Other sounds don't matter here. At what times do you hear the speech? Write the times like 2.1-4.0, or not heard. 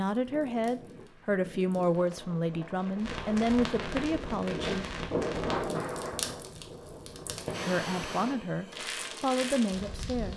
0.0-4.8, 7.7-10.3.